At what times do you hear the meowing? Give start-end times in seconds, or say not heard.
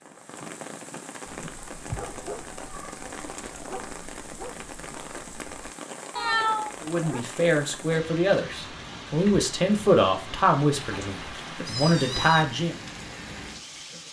1.9-3.0, 6.2-6.8, 10.7-12.4.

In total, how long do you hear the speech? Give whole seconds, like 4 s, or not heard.
6 s.